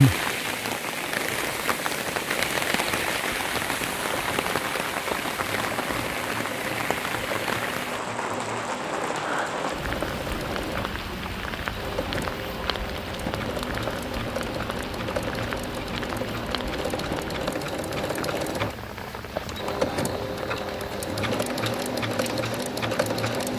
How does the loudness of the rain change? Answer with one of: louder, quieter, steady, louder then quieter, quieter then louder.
quieter.